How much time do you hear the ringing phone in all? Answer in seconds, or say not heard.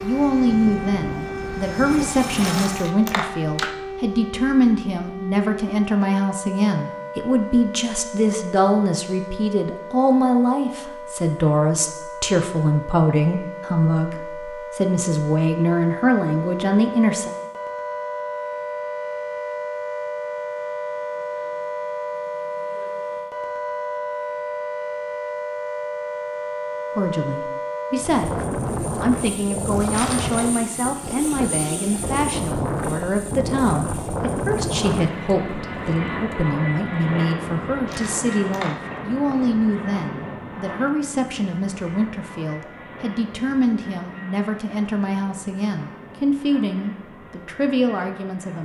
3 s.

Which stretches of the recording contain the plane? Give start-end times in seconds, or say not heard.
0.0-2.9, 27.9-48.6.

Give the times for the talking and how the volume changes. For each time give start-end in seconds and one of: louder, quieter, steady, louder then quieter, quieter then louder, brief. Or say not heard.
0.0-17.3 steady
26.9-48.6 steady.